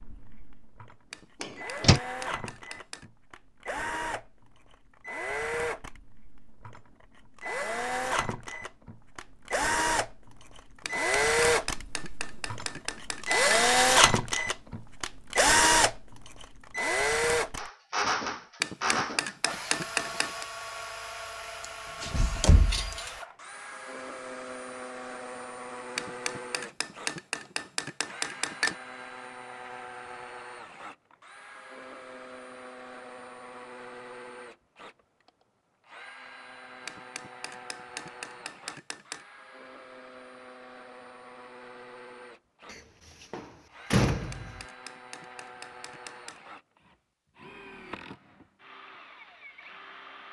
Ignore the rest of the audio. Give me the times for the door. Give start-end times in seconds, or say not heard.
1.4-2.0, 21.6-23.1, 42.7-44.6.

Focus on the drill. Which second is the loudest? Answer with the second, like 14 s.
14 s.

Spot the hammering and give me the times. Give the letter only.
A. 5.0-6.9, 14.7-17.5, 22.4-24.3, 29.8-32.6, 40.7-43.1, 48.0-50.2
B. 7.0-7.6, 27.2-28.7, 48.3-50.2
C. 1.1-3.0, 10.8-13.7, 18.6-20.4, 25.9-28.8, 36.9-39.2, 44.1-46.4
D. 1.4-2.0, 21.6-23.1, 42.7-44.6
C.